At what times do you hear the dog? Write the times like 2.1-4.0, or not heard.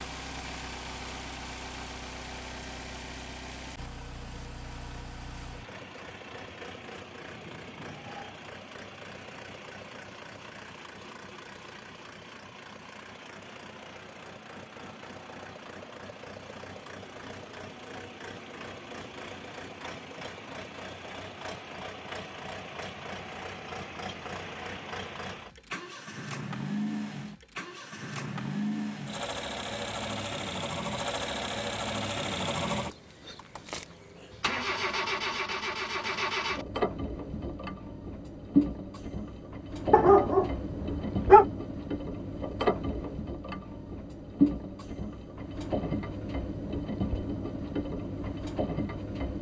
39.9-41.5.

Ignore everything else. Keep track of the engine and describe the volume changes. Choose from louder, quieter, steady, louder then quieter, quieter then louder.
louder.